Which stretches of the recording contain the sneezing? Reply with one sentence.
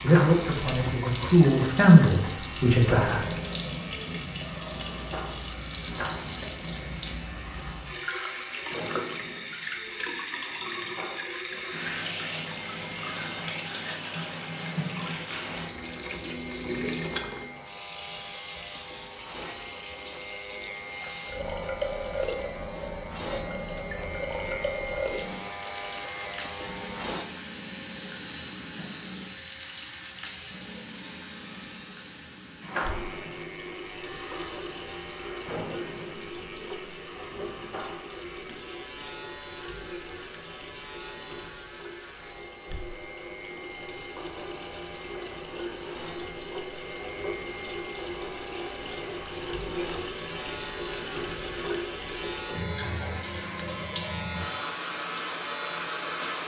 You can't hear the sneezing here.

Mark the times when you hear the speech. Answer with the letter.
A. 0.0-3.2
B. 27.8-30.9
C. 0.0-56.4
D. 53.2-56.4
A.